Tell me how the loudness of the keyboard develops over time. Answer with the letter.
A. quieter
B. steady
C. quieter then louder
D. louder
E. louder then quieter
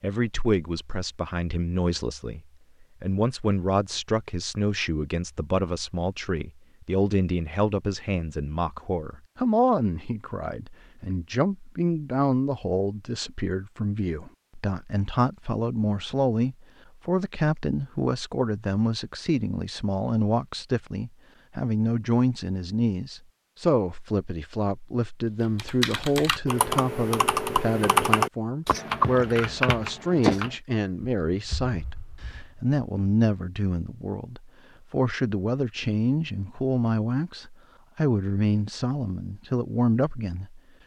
E.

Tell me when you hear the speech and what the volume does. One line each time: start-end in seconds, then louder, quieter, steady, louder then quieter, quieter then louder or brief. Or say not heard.
0.0-2.4 brief
3.0-40.6 steady.